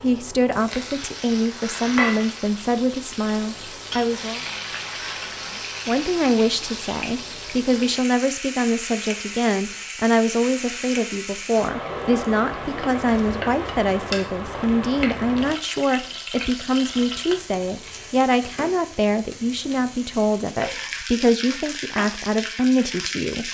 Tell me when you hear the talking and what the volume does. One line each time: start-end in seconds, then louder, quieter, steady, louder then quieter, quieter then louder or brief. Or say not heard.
0.0-4.4 steady
5.8-23.4 steady.